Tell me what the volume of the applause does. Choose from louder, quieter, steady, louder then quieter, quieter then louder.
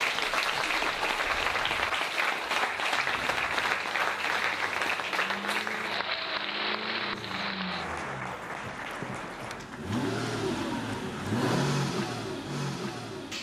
quieter.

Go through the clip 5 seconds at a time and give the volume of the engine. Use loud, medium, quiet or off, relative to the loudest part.
quiet, medium, loud.